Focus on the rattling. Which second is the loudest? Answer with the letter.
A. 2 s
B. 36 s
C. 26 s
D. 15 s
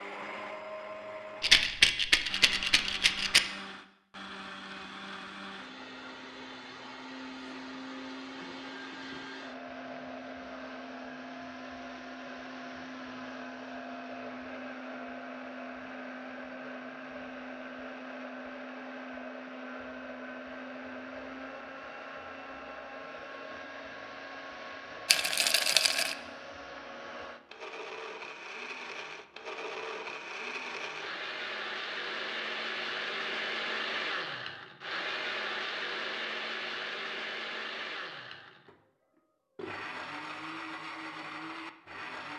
A.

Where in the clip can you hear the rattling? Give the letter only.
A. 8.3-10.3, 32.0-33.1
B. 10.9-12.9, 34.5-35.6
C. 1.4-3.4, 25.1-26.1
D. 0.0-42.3
C.